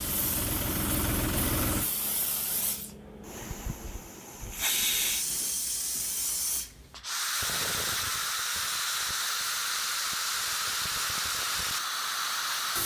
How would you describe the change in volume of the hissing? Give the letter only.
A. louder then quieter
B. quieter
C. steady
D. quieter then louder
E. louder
E.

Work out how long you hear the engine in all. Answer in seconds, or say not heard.
2 s.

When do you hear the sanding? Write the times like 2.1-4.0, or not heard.
not heard.